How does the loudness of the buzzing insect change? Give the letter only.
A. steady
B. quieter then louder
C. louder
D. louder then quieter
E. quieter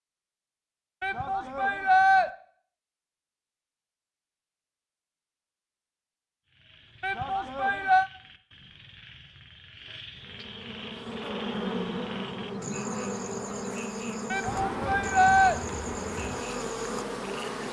A.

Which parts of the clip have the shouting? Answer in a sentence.
The shouting can be heard from 1.0 to 2.3 s, from 7.0 to 8.1 s and from 14.3 to 15.6 s.